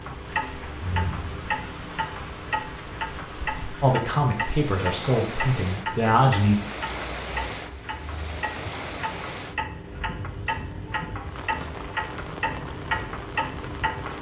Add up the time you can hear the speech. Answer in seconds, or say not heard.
3 s.